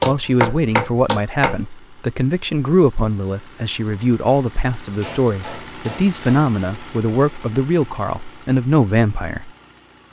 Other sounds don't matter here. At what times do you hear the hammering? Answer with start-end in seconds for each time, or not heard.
0.0-1.6, 5.0-6.5.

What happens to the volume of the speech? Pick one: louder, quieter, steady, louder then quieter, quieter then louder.
steady.